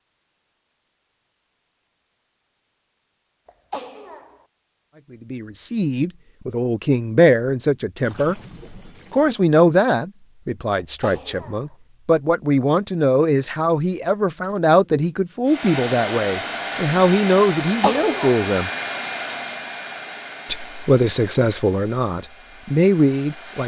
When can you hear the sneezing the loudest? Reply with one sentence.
The volume of the sneezing peaks at 18 seconds.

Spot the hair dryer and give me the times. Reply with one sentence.
You can hear the hair dryer from 15.4 to 23.6 s.